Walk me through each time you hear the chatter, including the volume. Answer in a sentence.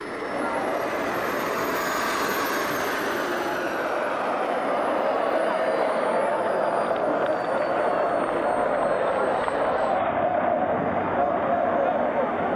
The chatter can be heard from 0.0 to 12.5 s, getting louder.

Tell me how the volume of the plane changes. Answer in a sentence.
The loudness of the plane goes down.